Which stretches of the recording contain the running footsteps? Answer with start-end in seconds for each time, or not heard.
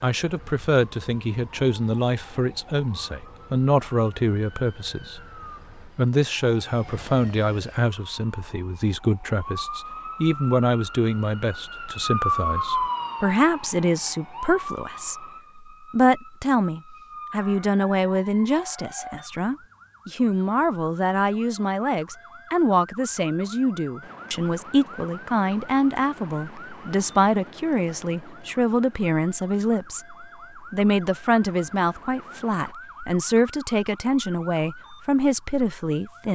not heard.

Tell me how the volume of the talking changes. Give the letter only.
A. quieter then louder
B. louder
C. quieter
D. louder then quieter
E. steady
E.